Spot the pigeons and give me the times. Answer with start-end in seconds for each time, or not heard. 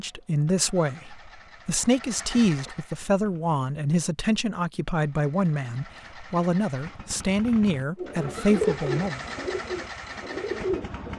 8.0-11.1.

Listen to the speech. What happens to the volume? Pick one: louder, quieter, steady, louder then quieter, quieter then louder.
steady.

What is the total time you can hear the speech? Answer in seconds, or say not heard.
9 s.